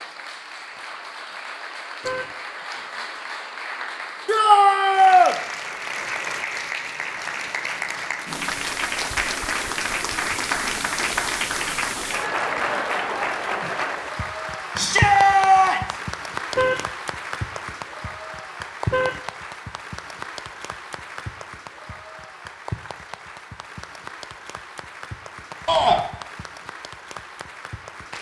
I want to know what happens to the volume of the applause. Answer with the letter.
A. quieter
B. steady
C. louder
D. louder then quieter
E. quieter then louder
D.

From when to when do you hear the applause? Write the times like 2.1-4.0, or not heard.
0.0-28.1.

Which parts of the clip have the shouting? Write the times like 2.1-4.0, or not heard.
4.2-5.3, 14.8-15.9, 25.6-26.1.